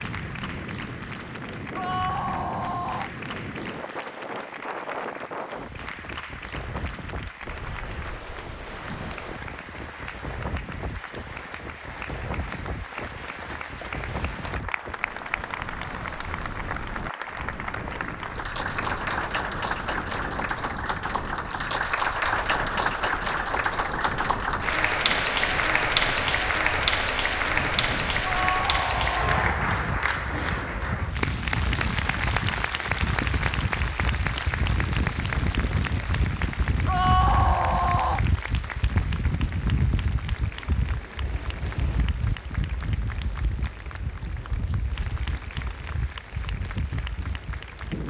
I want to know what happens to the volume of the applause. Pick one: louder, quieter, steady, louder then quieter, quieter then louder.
louder then quieter.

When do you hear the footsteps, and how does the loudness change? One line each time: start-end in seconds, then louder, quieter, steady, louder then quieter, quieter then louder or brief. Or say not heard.
not heard.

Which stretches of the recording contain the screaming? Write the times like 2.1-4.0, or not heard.
1.8-3.1, 28.2-29.6, 36.9-38.2.